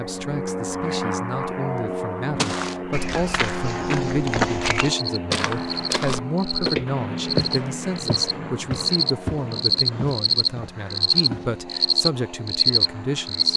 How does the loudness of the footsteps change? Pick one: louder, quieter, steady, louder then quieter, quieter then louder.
louder then quieter.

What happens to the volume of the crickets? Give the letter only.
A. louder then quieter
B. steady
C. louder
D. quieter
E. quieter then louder
C.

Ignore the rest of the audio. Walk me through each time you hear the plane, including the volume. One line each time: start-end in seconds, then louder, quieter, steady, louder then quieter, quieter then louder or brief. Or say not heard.
0.0-13.5 quieter.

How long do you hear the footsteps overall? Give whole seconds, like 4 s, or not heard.
9 s.